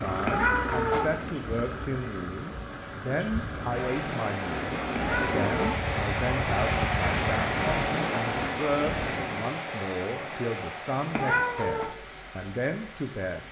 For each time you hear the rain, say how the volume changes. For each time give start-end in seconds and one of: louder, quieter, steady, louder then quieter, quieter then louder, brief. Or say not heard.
0.0-13.4 louder then quieter.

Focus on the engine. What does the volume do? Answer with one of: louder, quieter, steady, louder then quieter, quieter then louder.
quieter then louder.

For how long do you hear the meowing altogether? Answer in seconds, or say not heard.
3 s.